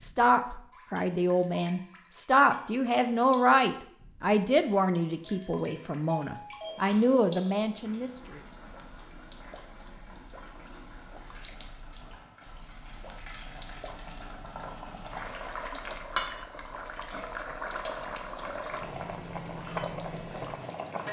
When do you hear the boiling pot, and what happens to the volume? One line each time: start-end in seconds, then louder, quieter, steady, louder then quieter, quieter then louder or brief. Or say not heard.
6.6-21.0 louder.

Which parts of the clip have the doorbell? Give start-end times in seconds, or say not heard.
5.2-6.8.